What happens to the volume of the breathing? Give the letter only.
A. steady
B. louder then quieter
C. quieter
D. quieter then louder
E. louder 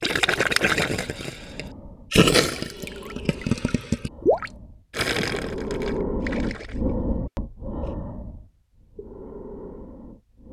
B.